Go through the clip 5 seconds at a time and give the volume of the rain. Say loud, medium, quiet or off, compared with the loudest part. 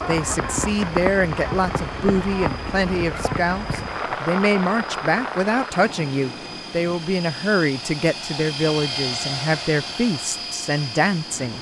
loud, medium, quiet.